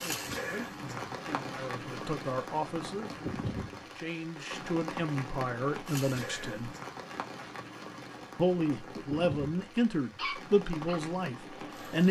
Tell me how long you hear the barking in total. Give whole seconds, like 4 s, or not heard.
2 s.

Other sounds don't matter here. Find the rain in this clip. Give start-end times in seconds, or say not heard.
0.0-12.0.